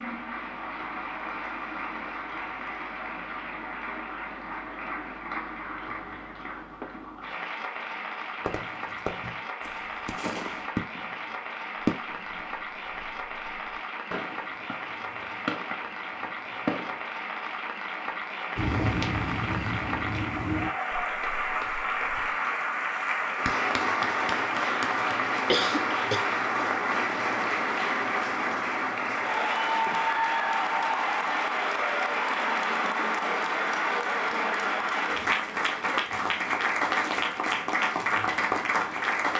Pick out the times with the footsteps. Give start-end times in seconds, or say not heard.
18.6-22.4.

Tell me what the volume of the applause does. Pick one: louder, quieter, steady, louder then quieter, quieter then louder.
louder.